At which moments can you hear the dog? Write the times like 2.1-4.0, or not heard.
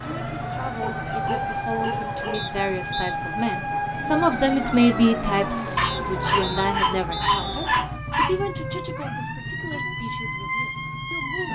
0.8-2.5, 5.8-8.5.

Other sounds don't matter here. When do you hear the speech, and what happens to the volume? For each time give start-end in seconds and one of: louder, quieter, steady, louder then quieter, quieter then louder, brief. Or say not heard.
0.0-11.4 louder then quieter.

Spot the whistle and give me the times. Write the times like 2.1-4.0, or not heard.
2.3-3.1, 5.8-7.8.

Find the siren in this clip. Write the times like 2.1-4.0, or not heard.
0.0-11.4.